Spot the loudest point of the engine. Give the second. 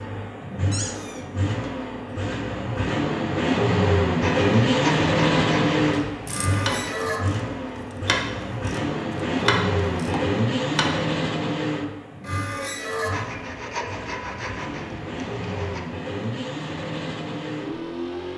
5 s.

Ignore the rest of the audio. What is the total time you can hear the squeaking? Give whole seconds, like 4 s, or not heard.
3 s.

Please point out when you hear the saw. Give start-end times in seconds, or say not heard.
4.2-7.0, 13.1-15.8.